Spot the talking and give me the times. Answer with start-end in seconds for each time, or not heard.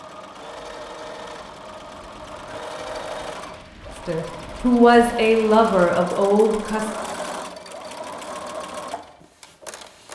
4.0-6.9.